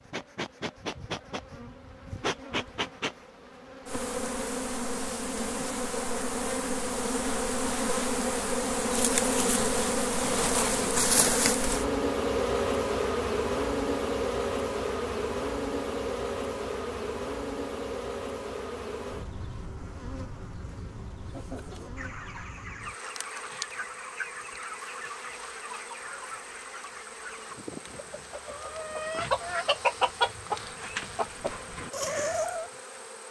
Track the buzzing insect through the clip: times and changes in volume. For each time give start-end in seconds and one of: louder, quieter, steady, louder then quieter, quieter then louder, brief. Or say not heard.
0.0-33.2 louder then quieter.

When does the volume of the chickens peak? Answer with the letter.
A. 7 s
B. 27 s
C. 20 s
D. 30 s
D.